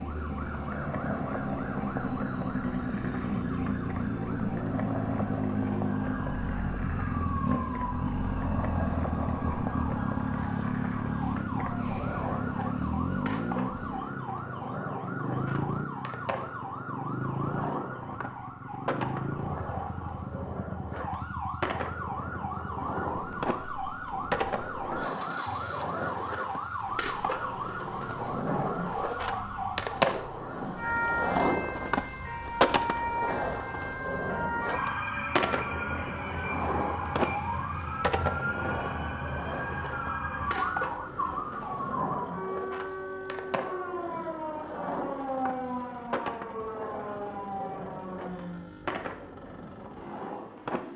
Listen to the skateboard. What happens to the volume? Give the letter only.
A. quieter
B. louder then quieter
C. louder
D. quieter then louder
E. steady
B.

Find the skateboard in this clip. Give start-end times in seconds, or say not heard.
0.0-50.9.